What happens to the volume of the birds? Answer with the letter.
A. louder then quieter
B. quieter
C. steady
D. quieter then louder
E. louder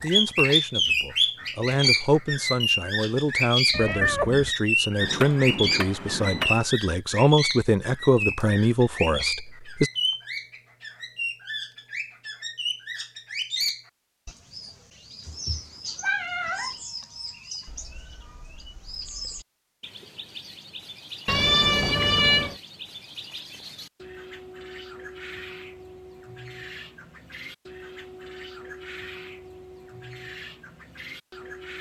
B.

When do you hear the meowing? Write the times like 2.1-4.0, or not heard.
3.7-4.5, 15.2-16.8, 21.2-22.6.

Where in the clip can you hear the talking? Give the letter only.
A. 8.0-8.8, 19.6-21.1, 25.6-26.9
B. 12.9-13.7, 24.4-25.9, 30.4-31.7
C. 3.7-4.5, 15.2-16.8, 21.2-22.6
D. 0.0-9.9
D.